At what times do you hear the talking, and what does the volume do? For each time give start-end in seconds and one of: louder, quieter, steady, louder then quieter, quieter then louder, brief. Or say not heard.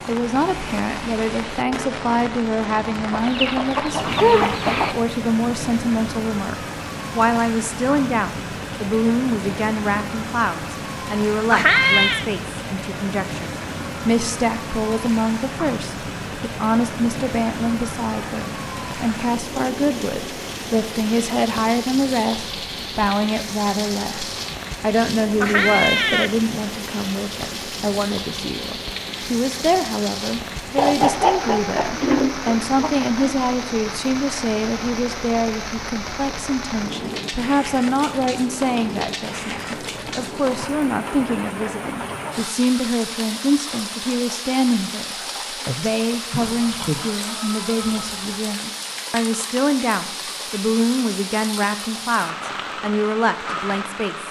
0.1-54.2 steady.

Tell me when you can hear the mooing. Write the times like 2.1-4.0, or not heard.
not heard.